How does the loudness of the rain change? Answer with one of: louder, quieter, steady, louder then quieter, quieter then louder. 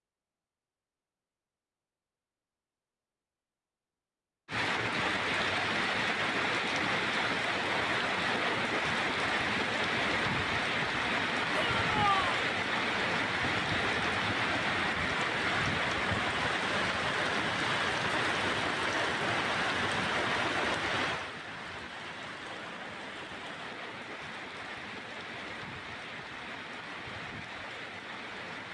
quieter.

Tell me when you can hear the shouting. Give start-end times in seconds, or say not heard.
11.6-12.4.